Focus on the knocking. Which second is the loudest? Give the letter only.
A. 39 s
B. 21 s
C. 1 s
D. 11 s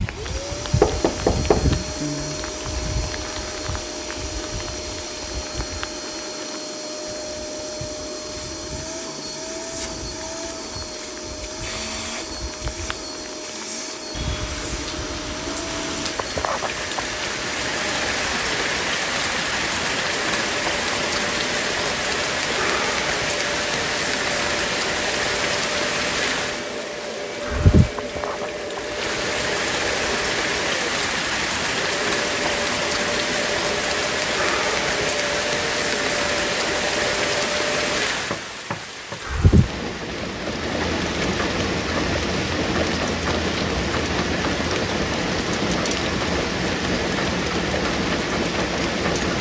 C.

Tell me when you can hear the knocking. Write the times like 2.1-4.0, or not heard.
0.8-1.7, 38.3-39.2.